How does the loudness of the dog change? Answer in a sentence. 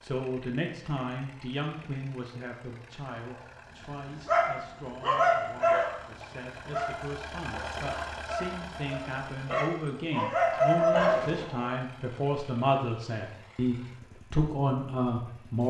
The loudness of the dog goes down, then up.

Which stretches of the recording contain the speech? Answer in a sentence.
You can hear the speech from 0.0 to 15.6 s.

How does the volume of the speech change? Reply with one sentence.
The volume of the speech goes down, then up.